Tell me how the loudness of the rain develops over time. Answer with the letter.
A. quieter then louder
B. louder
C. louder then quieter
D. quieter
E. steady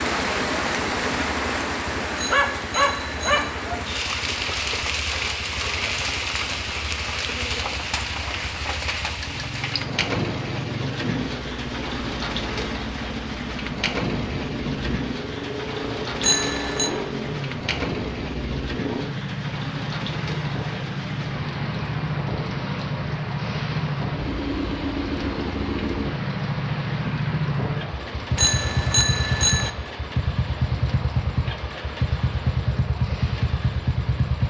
D.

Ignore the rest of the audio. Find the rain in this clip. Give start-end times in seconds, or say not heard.
0.0-34.4.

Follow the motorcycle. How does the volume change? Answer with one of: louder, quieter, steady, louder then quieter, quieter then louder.
louder.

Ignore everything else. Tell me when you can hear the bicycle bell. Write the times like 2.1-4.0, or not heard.
2.1-3.5, 16.2-16.9, 28.4-29.7.